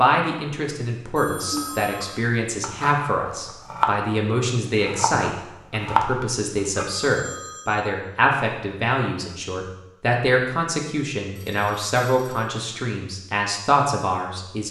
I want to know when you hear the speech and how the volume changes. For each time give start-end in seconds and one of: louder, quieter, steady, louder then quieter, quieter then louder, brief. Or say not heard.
0.0-14.6 steady.